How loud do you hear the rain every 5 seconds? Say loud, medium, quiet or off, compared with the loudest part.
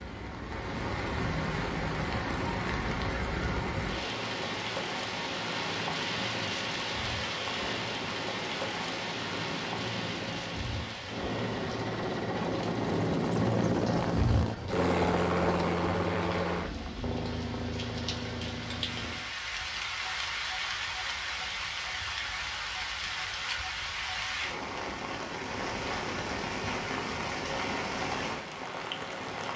loud, loud, medium, medium, loud, loud.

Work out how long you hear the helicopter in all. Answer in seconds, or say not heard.
19 s.